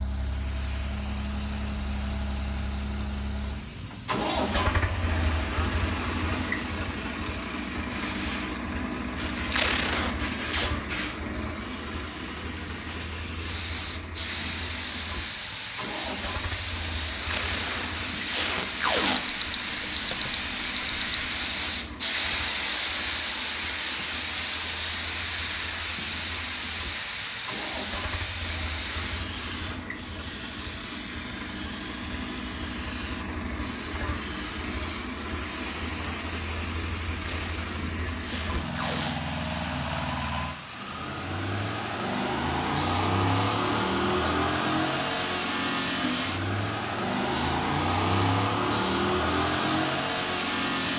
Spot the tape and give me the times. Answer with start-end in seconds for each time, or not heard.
9.4-10.7, 17.2-19.2, 37.2-39.1.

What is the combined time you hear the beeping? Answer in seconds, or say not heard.
2 s.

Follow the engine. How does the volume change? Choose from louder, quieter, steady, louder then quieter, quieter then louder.
quieter then louder.